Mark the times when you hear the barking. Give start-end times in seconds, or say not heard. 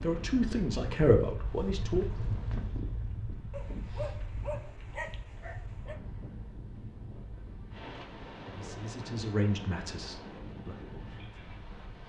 3.5-6.0.